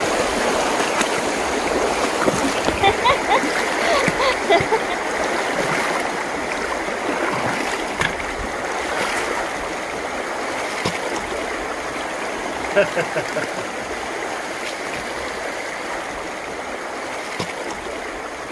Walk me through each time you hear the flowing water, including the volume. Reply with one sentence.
The flowing water can be heard from 0.0 to 18.4 s, getting quieter.